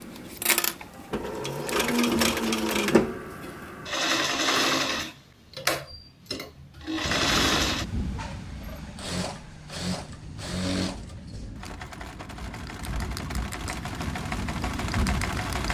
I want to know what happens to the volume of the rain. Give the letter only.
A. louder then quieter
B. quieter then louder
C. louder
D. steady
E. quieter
B.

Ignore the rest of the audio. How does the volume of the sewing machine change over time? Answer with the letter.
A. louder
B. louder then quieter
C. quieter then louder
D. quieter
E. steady
D.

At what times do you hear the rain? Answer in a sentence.
You can hear the rain from 7.0 to 15.6 s.